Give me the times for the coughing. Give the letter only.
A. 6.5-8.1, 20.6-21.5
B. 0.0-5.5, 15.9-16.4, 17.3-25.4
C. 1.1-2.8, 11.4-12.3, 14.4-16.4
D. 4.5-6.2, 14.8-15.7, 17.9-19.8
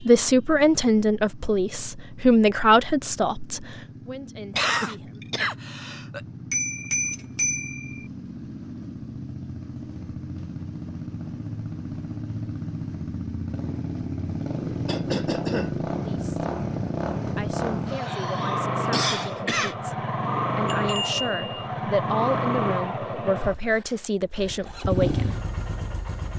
D.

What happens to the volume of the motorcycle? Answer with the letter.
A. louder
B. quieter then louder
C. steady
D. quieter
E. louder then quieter
A.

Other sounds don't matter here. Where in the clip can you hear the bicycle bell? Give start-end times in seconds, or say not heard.
6.5-8.1, 20.6-21.5.